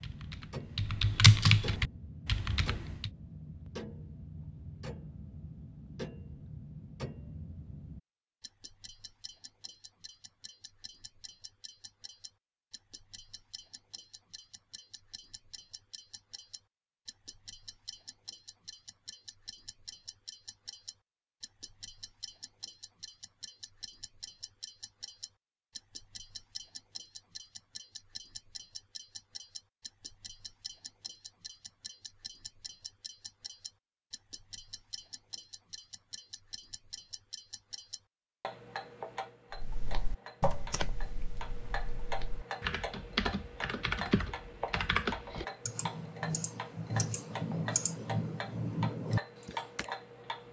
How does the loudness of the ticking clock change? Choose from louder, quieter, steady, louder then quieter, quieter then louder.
quieter then louder.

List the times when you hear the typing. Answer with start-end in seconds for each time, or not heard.
0.0-3.1, 39.5-49.9.